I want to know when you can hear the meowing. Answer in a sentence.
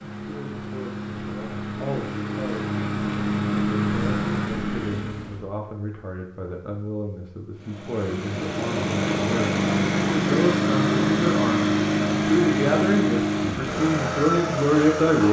The meowing can be heard from 4.7 to 5.5 s.